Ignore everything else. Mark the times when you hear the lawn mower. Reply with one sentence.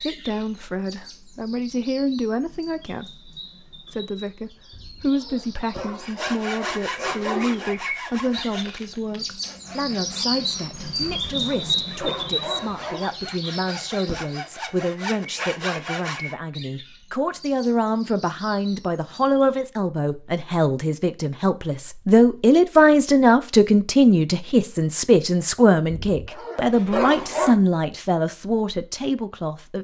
You can't hear the lawn mower here.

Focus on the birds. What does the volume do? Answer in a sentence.
The loudness of the birds goes up, then down.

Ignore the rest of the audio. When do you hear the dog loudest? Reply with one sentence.
The volume of the dog peaks at 27 seconds.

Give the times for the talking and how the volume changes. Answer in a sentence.
You can hear the talking from 0.0 to 29.8 s, getting louder.